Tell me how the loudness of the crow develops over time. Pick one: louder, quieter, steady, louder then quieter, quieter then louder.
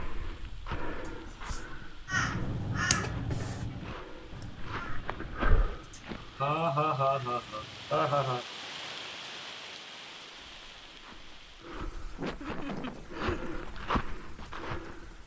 quieter.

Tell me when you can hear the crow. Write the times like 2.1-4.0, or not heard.
2.0-8.0.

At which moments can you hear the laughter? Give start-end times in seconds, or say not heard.
1.0-1.8, 5.8-8.4, 12.2-13.5.